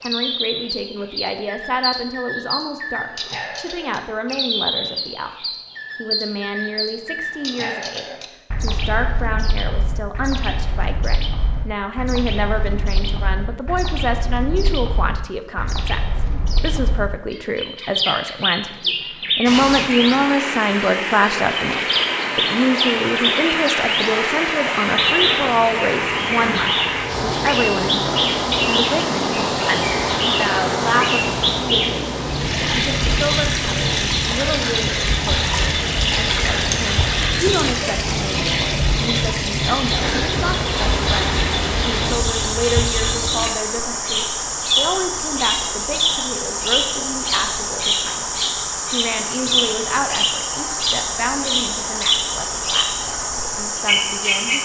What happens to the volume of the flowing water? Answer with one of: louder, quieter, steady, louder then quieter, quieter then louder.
steady.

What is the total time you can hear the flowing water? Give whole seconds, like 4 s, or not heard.
35 s.